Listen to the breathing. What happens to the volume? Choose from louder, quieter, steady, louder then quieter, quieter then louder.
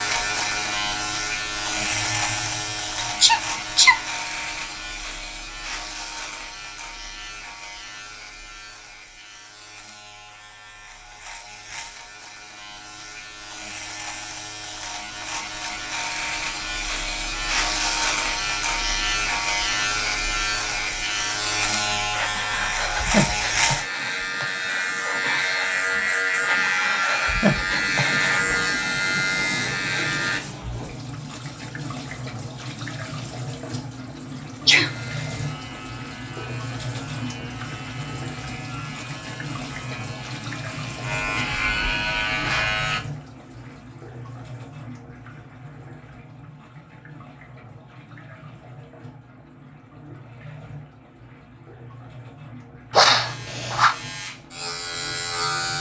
quieter then louder.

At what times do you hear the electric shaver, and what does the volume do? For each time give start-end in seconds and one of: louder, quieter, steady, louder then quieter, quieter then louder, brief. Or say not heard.
0.0-30.4 quieter then louder
34.9-43.0 louder
53.1-55.7 brief.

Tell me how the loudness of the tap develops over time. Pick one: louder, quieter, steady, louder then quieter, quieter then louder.
quieter.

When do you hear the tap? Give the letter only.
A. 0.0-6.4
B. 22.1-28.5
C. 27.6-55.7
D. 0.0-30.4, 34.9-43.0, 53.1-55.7
C.